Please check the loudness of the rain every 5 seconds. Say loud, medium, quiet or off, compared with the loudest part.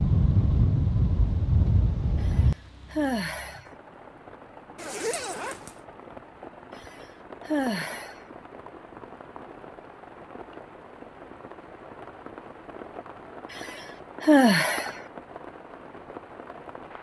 loud, quiet, quiet, quiet.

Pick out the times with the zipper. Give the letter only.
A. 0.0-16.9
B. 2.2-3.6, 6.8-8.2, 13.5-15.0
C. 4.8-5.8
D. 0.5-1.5
C.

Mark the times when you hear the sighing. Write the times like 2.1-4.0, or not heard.
2.2-3.6, 6.8-8.2, 13.5-15.0.